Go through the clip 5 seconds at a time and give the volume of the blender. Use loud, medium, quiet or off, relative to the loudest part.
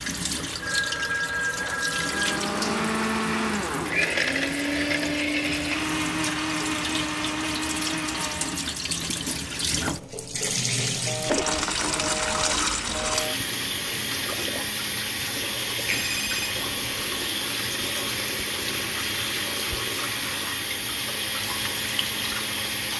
loud, loud, medium, medium, medium.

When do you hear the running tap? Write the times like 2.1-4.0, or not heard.
0.0-22.9.